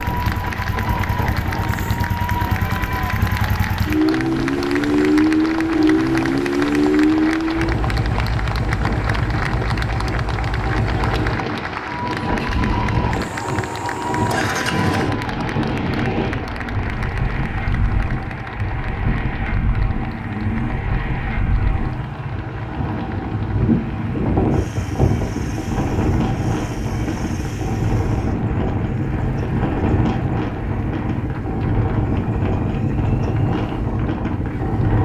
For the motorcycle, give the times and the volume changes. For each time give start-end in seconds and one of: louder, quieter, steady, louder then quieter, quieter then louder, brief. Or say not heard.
0.0-34.9 quieter.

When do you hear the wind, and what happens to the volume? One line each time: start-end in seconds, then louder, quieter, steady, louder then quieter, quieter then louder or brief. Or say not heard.
0.0-34.9 louder.